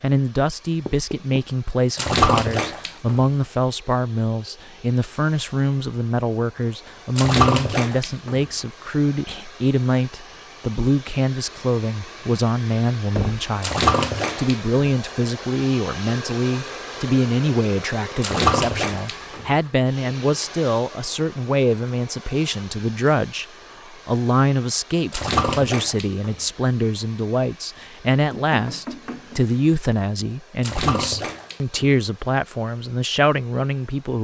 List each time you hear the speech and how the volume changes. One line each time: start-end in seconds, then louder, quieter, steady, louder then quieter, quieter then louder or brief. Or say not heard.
0.0-34.1 steady.